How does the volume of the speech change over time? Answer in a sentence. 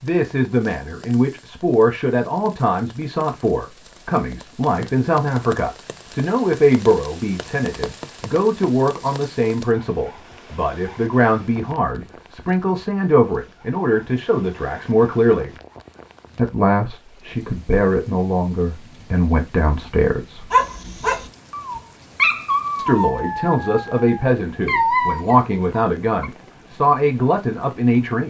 The loudness of the speech stays about the same.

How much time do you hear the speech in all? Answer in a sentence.
You can hear the speech for 25 seconds altogether.